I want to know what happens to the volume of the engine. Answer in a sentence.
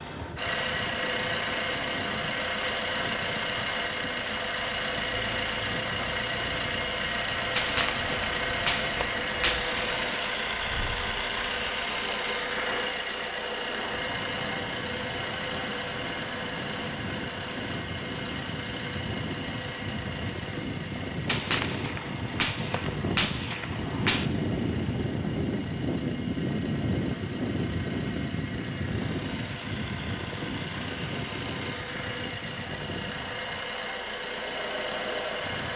The volume of the engine goes down, then up.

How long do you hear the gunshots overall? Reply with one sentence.
You can hear the gunshots for 6 seconds altogether.